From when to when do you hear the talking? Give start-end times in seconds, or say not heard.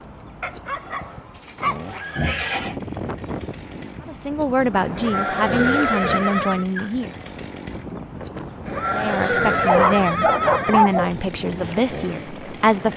4.0-7.2, 8.8-12.9.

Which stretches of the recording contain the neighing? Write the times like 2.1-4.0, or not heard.
1.3-2.8, 5.0-6.7, 8.7-10.9.